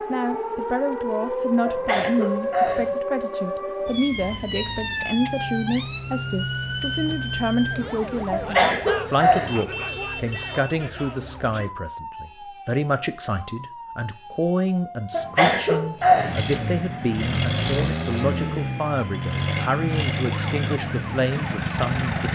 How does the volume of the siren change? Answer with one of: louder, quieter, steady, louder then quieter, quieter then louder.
quieter.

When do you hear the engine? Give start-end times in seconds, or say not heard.
16.0-22.2.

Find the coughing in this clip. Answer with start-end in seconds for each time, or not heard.
1.6-3.0, 8.3-9.6, 15.1-16.4.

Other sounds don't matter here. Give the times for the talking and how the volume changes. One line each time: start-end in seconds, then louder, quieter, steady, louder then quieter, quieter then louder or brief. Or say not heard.
0.1-22.2 steady.